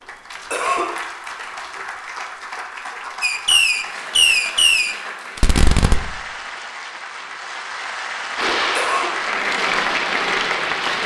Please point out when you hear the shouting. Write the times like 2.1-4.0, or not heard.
not heard.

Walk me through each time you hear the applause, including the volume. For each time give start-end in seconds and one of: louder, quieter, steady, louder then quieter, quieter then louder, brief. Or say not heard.
0.0-11.0 louder.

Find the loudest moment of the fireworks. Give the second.
4 s.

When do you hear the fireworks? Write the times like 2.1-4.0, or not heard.
3.2-6.1, 8.3-11.0.